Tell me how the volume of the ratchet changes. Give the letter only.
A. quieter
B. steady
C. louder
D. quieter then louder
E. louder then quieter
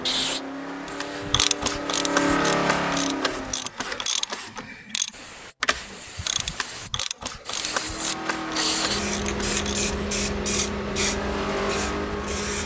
A.